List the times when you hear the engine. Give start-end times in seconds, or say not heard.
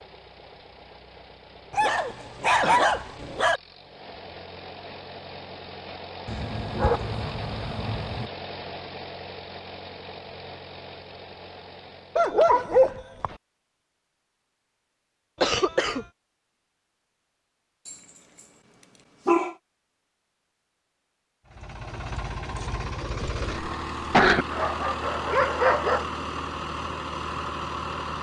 0.0-12.3, 21.4-28.1.